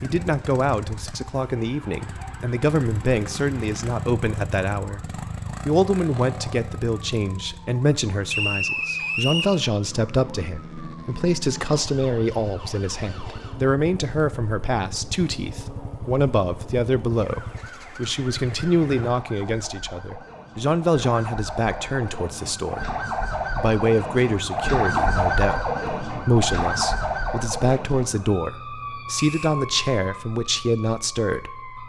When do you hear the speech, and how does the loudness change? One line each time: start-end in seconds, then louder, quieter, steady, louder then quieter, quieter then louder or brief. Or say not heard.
0.0-22.9 steady
23.6-31.8 steady.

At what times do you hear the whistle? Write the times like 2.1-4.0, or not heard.
8.2-9.6, 29.1-29.6.